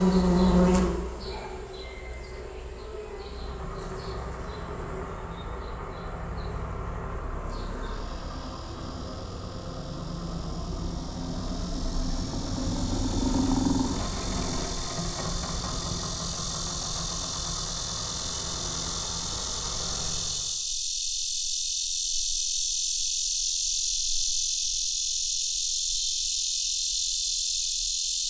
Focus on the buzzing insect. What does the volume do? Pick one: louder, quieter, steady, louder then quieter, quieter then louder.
quieter then louder.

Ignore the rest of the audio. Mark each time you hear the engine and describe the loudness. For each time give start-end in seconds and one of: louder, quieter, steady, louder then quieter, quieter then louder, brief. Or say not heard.
3.1-20.6 louder then quieter.